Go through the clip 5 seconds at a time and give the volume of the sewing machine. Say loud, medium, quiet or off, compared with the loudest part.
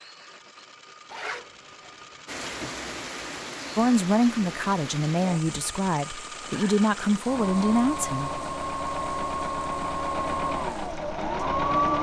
quiet, medium, loud.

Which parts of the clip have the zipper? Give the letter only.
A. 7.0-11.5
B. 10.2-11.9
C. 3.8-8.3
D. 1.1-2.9
D.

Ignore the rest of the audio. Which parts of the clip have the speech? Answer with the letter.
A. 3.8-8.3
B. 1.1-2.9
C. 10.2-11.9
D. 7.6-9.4
A.